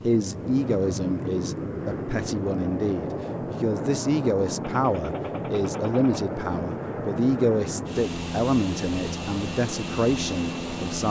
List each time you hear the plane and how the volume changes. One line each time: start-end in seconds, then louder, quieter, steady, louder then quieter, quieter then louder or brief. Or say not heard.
0.0-11.0 steady.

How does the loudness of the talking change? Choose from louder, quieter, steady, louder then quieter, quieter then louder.
steady.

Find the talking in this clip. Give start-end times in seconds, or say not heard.
0.0-11.0.